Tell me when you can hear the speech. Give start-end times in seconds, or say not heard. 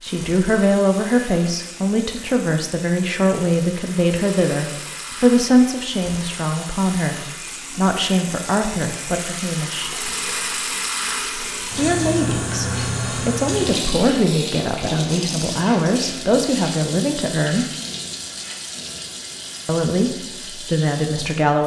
0.0-9.9, 11.8-17.6, 19.6-21.6.